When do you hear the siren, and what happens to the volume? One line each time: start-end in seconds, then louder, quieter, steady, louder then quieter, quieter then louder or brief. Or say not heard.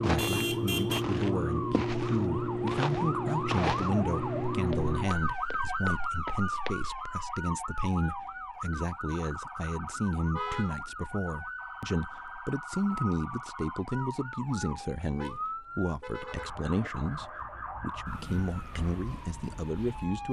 0.0-20.2 quieter.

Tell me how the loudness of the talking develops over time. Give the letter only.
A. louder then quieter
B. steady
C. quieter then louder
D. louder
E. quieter
B.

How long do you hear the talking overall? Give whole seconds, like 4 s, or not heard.
20 s.